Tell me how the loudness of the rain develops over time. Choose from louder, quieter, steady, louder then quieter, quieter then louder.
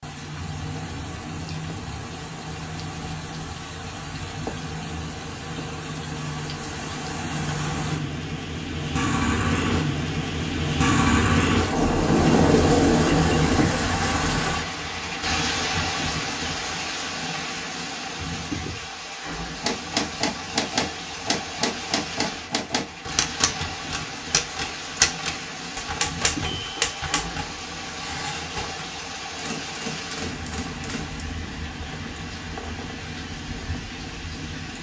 louder then quieter.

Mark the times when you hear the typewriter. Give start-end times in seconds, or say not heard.
19.6-31.2.